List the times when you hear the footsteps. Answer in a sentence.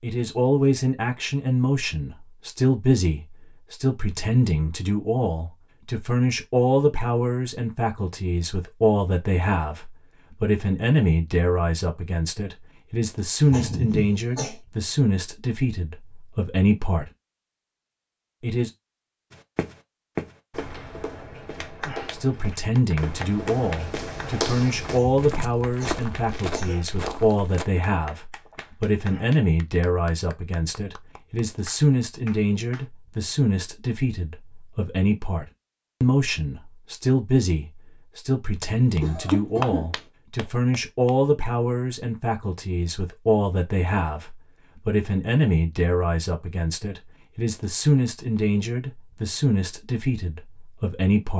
You can hear the footsteps from 19.3 to 27.6 s.